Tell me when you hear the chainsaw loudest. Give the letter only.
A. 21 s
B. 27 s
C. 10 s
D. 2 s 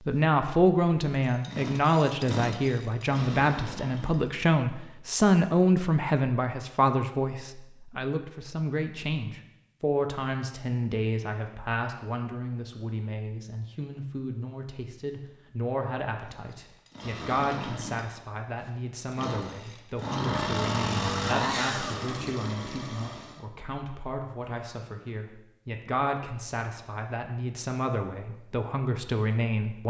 A.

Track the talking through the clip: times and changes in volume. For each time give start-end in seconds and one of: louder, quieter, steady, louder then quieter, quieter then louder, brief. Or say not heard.
0.0-29.8 quieter.